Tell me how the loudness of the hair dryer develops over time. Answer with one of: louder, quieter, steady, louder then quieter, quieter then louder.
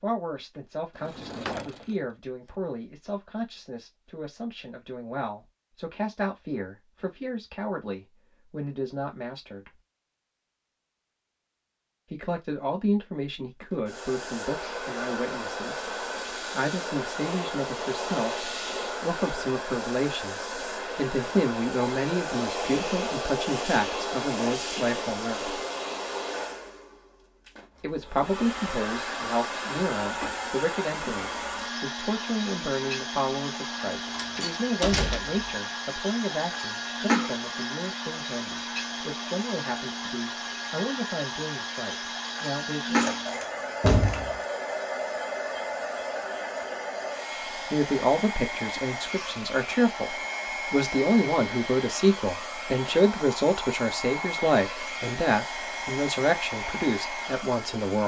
steady.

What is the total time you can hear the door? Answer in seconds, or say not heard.
4 s.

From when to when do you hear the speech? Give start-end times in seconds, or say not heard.
0.0-9.7, 12.1-15.9, 16.5-25.6, 27.8-43.0, 47.7-58.0.